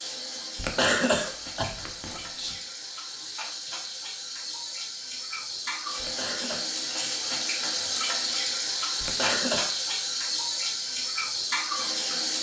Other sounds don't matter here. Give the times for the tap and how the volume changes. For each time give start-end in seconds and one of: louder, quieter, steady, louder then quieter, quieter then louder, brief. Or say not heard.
0.0-12.3 louder.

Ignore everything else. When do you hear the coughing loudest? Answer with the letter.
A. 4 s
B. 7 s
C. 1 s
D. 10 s
C.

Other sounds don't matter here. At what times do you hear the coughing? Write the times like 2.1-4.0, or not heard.
0.6-2.5, 6.0-6.7, 9.0-9.8.